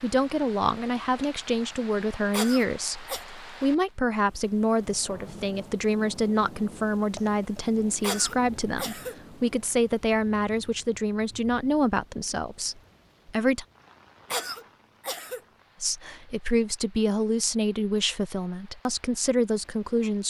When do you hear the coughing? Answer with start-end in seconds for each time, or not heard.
2.3-3.2, 8.0-9.2, 14.3-15.4.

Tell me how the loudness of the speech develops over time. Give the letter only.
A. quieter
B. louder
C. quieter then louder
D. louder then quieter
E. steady
E.